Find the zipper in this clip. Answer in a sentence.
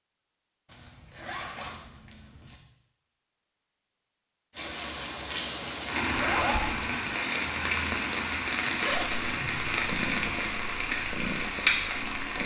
The zipper can be heard from 0.7 to 2.6 s, from 6.1 to 6.7 s and from 8.4 to 9.2 s.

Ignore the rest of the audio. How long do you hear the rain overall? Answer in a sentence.
You can hear the rain for 8 seconds altogether.